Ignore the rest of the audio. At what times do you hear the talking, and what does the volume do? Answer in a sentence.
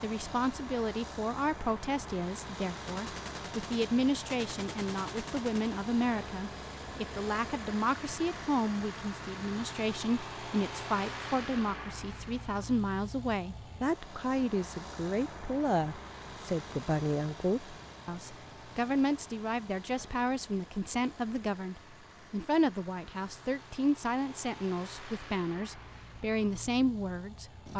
You can hear the talking from 0.0 to 27.7 s, at a steady volume.